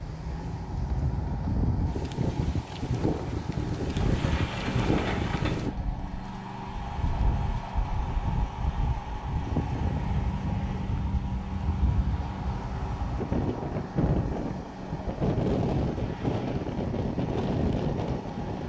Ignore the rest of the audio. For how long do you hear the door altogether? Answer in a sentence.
You can hear the door for 3 seconds altogether.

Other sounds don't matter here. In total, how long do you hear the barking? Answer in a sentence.
The barking can't be heard in this clip.